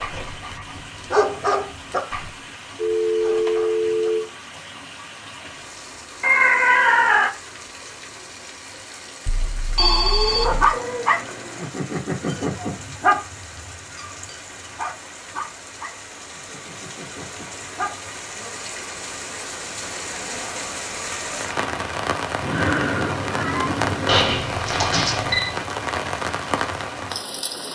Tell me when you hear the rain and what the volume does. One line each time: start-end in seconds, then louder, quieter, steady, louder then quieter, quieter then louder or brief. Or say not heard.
0.0-27.7 louder.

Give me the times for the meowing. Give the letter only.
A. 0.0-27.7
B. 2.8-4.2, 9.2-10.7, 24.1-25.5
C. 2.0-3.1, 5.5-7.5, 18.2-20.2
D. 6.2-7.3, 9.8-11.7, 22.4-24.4
D.